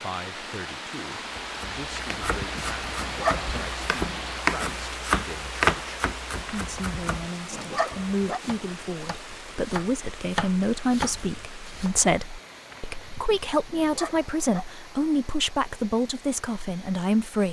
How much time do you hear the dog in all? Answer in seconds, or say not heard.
5 s.